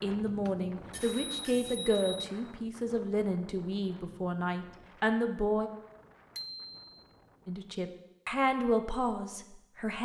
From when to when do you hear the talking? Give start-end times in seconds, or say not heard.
0.0-5.7, 7.5-10.0.